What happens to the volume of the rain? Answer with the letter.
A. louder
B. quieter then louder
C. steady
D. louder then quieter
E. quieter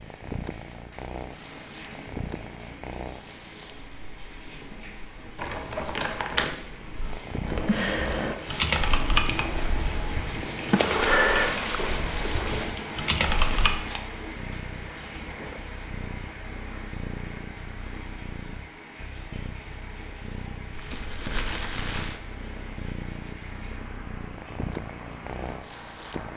D.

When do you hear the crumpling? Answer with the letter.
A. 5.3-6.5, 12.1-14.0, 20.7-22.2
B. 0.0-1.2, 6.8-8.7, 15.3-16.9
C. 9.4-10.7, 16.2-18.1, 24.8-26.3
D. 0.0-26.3
A.